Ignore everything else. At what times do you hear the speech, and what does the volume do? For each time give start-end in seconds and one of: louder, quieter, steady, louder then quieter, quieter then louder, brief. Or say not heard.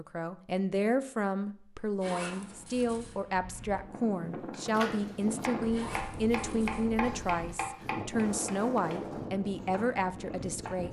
0.0-10.8 steady.